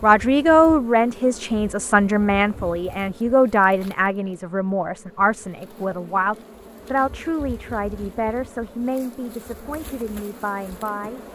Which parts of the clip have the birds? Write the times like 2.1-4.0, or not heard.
not heard.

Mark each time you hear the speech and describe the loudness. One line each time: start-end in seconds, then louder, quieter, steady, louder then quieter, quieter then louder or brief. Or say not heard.
0.0-11.2 quieter.